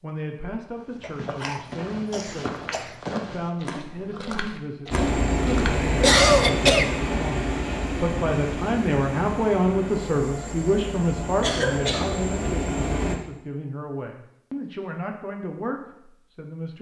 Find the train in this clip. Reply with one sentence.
You can hear the train from 4.9 to 13.2 s.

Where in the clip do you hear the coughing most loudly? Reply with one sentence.
The volume of the coughing peaks at 6 seconds.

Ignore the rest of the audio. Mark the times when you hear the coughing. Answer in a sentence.
You can hear the coughing from 1.0 to 2.9 s, from 6.0 to 6.9 s and from 11.4 to 12.2 s.